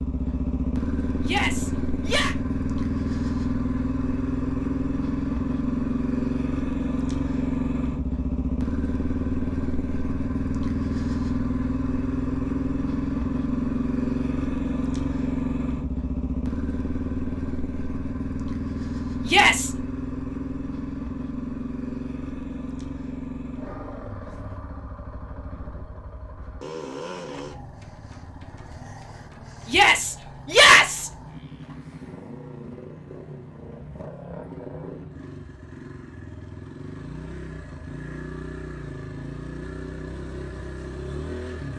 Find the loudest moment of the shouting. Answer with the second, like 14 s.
31 s.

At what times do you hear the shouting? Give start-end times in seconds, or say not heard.
1.2-2.4, 19.2-19.7, 29.6-31.1.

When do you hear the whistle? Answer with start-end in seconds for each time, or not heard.
not heard.